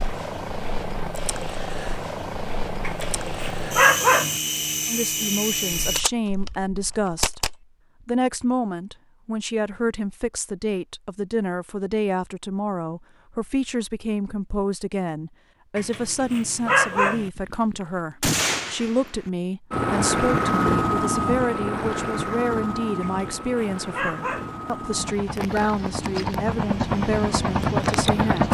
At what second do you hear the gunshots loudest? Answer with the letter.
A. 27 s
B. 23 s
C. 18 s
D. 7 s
C.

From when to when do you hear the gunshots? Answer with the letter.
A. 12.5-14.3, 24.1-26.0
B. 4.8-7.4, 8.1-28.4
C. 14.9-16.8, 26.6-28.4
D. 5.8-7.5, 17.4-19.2
D.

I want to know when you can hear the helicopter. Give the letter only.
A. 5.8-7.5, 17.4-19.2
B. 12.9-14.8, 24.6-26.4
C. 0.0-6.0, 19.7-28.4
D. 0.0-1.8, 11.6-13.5
C.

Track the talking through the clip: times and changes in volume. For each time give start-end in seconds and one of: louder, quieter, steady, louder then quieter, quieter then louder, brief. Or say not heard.
4.8-7.4 brief
8.1-28.4 steady.